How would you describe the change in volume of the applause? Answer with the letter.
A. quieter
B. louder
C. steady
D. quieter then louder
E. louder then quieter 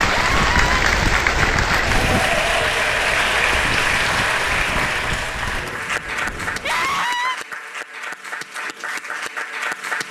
A.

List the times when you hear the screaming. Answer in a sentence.
The screaming can be heard from 0.1 to 0.8 s and from 6.6 to 7.3 s.